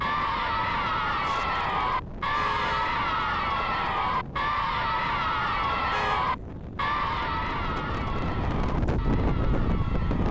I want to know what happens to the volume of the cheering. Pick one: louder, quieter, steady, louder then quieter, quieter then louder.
quieter.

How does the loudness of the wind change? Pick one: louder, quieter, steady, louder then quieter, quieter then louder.
louder.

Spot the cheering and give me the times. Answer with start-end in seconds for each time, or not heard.
0.0-10.2.